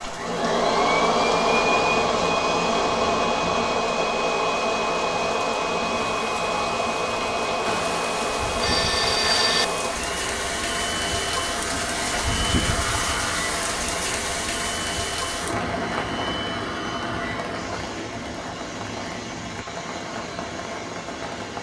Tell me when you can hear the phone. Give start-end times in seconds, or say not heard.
7.7-9.7.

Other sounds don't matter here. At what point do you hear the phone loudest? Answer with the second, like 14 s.
9 s.